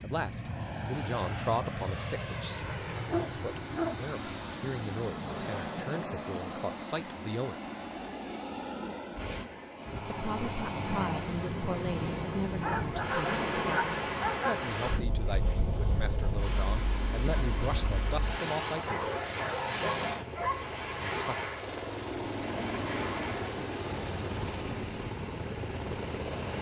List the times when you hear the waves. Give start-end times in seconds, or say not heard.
9.1-26.5.